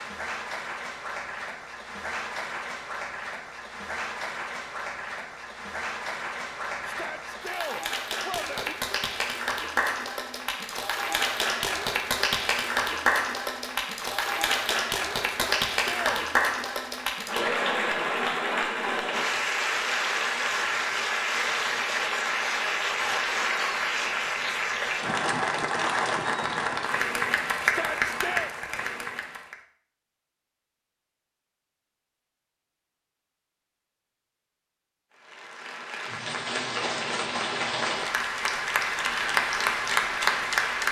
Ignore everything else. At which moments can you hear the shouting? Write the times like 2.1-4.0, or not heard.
6.8-8.8, 15.2-16.2, 27.6-28.5.